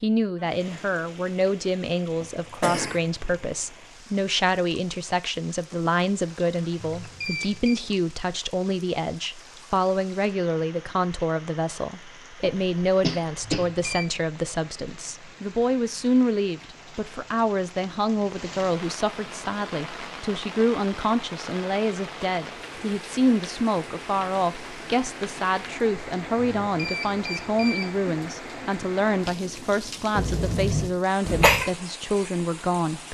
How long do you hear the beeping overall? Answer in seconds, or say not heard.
3 s.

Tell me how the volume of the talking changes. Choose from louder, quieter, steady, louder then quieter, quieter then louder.
steady.